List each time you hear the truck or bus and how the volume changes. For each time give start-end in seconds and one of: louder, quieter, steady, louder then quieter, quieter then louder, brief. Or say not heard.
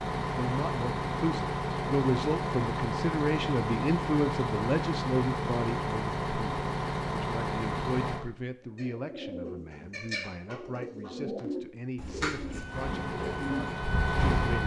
0.0-8.2 steady
12.7-14.6 brief.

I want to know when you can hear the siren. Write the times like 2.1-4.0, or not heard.
12.5-14.6.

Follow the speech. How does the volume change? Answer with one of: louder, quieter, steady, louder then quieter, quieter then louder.
quieter.